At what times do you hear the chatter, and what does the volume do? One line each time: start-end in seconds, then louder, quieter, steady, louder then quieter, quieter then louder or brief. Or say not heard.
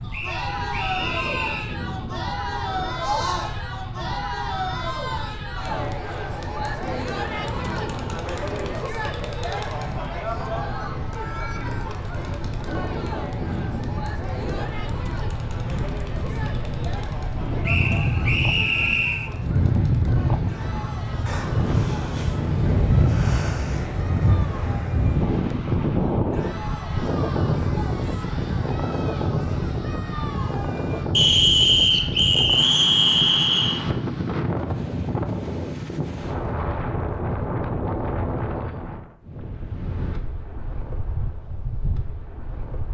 0.0-31.1 quieter.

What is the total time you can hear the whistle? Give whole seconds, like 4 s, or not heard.
6 s.